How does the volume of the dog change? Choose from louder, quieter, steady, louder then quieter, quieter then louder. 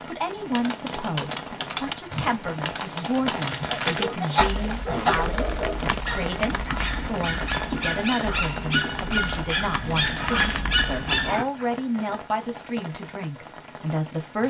louder.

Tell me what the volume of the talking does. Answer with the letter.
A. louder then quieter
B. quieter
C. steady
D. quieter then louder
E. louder
C.